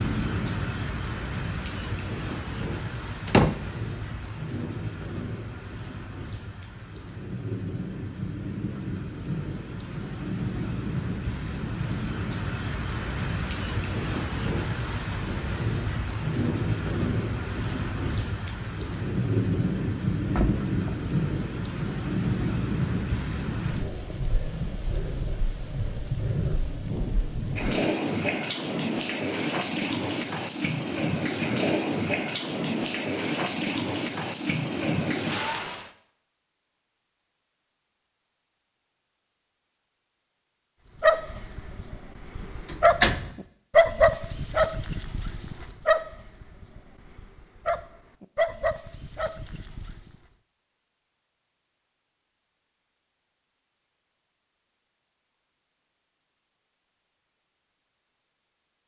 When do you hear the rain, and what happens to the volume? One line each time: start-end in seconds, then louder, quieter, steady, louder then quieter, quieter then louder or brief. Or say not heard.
0.0-35.9 louder.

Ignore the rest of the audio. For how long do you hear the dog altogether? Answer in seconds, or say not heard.
9 s.